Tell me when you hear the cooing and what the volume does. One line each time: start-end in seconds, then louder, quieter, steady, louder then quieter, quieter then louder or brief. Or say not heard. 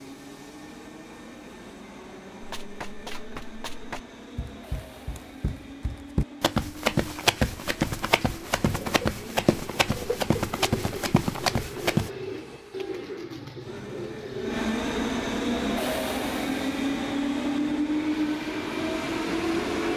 8.6-14.7 steady.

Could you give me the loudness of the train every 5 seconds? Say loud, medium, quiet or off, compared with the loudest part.
quiet, quiet, medium, loud.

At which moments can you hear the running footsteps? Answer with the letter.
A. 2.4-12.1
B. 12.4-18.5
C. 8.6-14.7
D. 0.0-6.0
A.